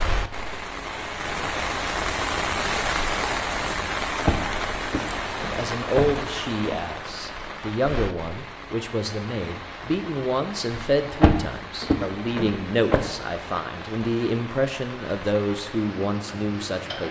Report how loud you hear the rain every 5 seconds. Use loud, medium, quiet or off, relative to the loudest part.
loud, medium, medium, medium.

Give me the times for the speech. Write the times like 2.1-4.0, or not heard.
5.5-17.0.